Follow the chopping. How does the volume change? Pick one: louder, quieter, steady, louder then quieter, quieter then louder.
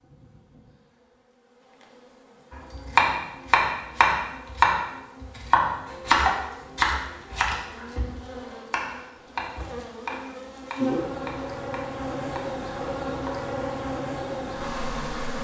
quieter.